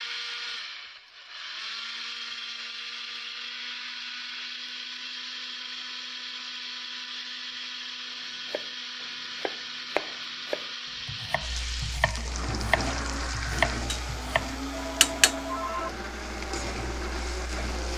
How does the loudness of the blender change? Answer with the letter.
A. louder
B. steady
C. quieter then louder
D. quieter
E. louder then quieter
B.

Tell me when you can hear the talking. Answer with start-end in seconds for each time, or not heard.
not heard.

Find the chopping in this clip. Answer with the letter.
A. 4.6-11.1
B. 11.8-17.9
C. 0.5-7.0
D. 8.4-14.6
D.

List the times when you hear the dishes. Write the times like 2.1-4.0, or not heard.
not heard.